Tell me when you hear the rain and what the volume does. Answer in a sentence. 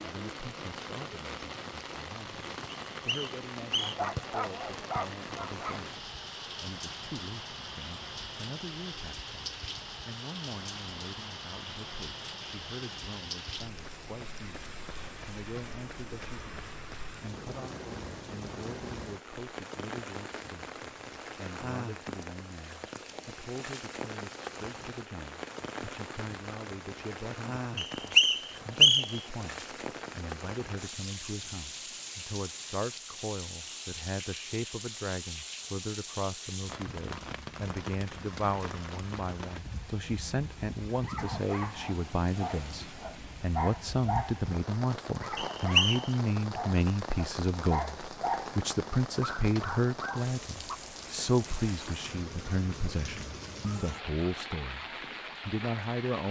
You can hear the rain from 0.0 to 56.2 s, at a steady volume.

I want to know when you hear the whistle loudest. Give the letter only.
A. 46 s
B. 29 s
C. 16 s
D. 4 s
B.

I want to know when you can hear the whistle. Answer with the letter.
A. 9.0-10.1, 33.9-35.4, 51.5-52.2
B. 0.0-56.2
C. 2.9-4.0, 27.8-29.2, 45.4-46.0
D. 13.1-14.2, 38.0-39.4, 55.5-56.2
C.